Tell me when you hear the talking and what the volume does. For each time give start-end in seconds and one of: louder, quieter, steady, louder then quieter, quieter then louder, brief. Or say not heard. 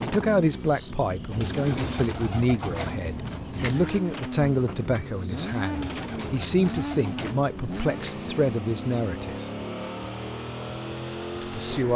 0.0-9.4 steady
11.4-11.9 brief.